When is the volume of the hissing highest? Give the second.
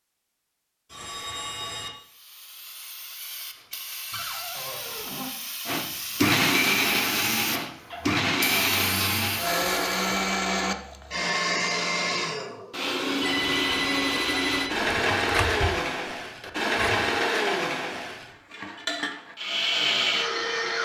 9 s.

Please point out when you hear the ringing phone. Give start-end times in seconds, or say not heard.
0.9-1.9, 13.2-14.8.